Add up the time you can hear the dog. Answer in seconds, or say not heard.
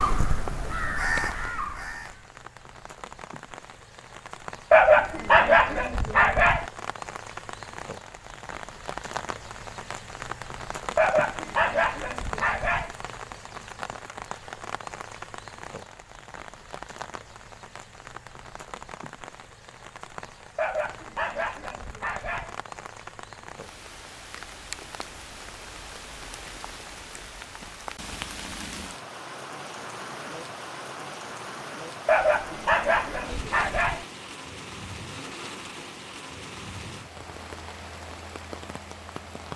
8 s.